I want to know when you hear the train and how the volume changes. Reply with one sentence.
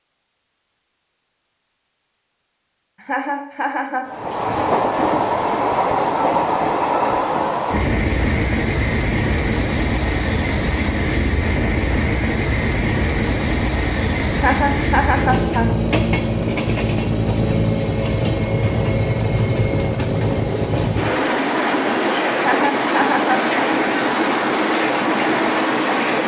You can hear the train from 4.0 to 26.2 s, at a steady volume.